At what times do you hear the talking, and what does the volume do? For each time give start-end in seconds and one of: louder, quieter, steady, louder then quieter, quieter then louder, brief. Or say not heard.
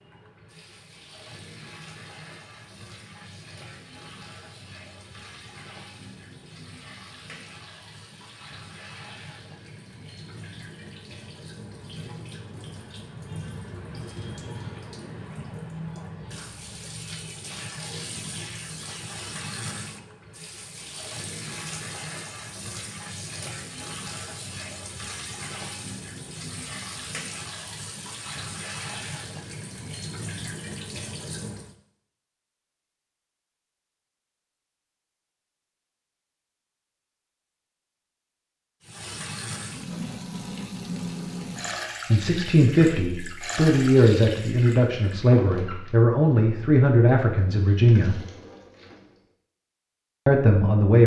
42.1-48.1 steady
50.2-51.0 brief.